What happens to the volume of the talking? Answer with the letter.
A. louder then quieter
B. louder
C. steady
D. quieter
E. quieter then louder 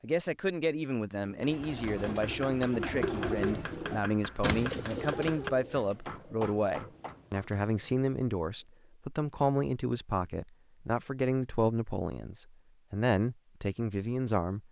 C.